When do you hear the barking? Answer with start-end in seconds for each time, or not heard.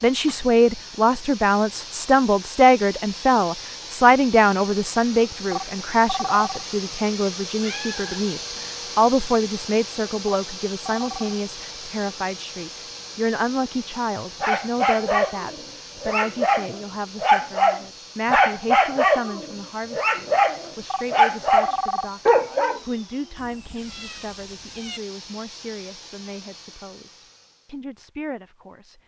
14.4-22.8.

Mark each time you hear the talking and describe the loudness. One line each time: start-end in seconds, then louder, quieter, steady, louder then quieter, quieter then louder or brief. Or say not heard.
0.0-29.0 quieter.